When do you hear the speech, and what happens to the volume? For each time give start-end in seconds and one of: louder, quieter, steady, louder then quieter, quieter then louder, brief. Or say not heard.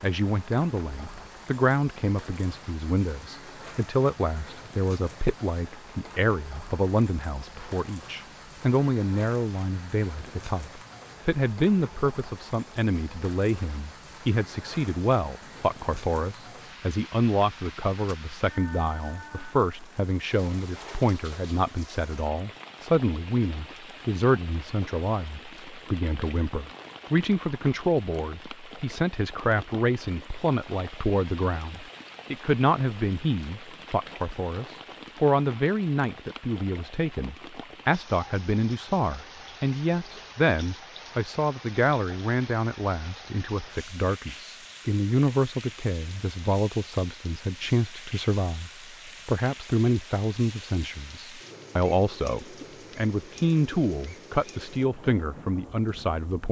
0.0-56.4 steady.